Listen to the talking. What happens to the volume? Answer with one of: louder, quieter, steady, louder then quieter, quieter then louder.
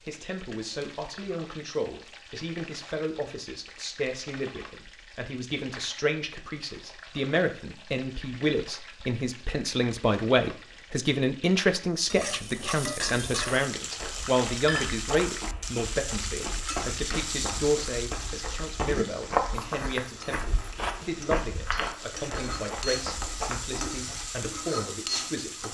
louder then quieter.